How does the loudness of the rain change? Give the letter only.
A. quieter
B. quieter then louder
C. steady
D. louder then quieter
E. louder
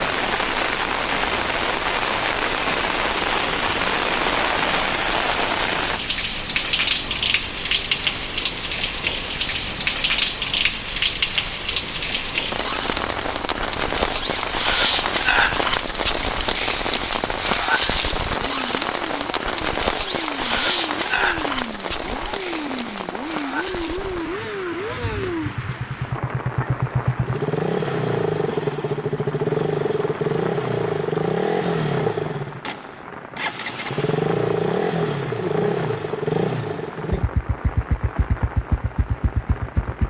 A.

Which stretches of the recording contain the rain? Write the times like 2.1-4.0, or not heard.
0.0-40.0.